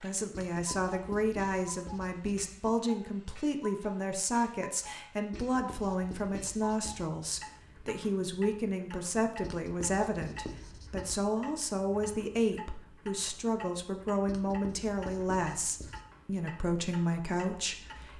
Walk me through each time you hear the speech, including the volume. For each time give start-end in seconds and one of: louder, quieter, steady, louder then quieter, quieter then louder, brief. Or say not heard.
0.0-18.1 steady.